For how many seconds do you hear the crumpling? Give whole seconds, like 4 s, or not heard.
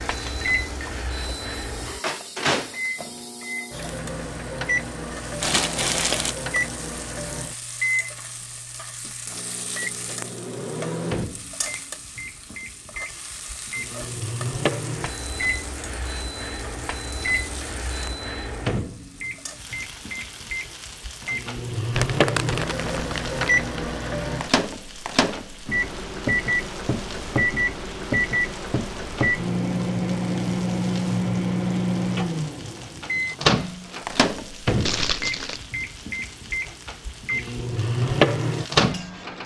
4 s.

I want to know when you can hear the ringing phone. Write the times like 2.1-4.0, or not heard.
not heard.